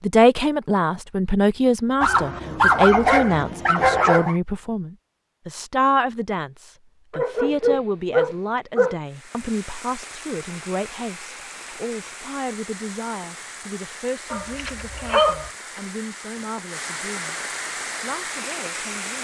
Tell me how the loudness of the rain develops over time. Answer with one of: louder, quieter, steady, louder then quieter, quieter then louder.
louder.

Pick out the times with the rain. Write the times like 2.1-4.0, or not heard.
9.1-19.1.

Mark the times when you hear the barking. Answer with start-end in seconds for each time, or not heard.
2.0-4.3, 7.1-8.9, 14.3-15.5.